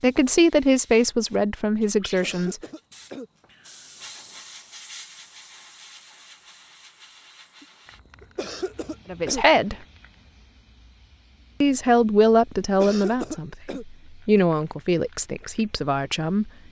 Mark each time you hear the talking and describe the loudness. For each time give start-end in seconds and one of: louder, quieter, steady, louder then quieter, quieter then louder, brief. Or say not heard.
0.0-2.6 brief
9.1-9.8 brief
11.6-16.5 quieter.